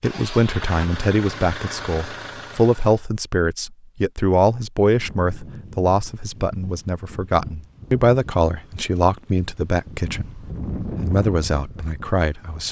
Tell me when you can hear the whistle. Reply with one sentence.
You can't hear the whistle here.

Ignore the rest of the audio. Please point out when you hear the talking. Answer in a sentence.
You can hear the talking from 0.0 to 12.6 s.